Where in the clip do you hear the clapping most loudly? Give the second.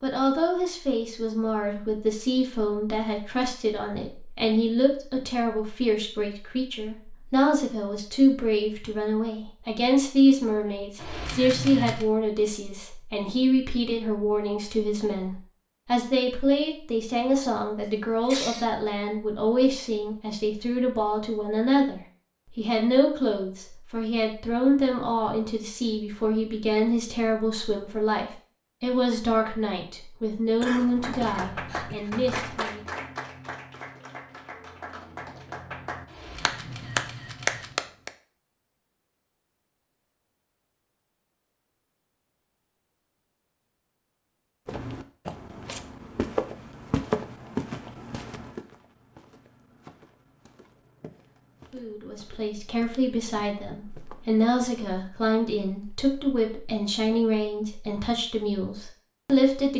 38 s.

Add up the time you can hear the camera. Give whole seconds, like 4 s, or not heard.
3 s.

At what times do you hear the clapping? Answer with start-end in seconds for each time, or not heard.
30.7-38.1.